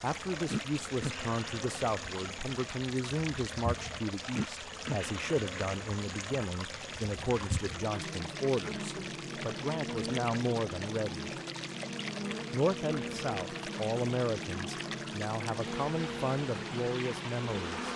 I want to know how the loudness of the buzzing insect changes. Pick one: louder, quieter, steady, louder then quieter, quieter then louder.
steady.